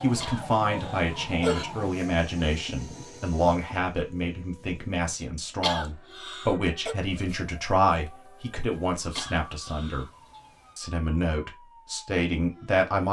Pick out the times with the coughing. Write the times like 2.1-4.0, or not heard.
0.2-1.6, 5.6-7.0, 9.2-10.1.